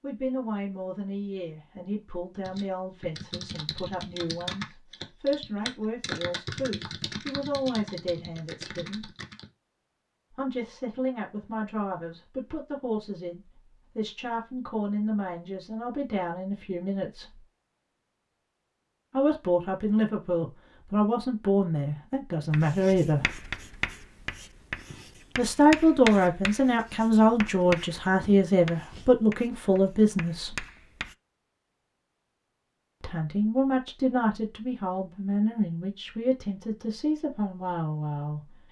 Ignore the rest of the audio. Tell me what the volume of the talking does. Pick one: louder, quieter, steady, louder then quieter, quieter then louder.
louder then quieter.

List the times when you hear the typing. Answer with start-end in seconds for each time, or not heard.
2.4-9.5.